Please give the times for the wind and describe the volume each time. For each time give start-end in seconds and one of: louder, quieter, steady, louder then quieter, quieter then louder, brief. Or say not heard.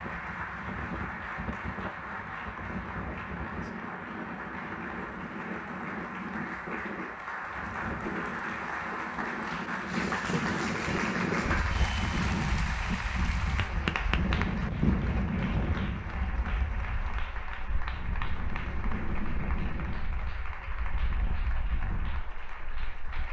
0.0-23.2 louder then quieter.